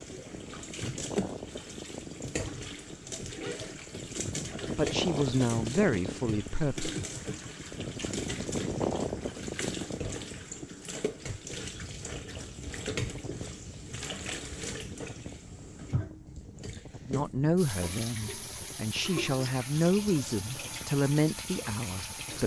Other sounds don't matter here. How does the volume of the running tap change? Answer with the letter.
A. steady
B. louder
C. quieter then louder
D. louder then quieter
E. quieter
A.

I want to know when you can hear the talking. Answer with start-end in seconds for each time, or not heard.
4.8-6.9, 17.1-22.4.